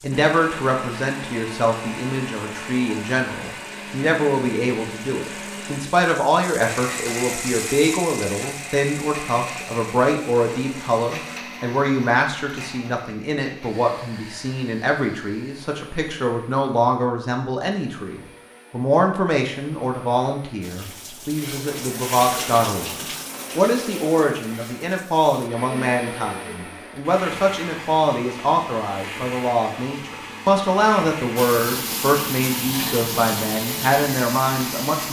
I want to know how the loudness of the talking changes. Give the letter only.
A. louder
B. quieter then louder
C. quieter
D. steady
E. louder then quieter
D.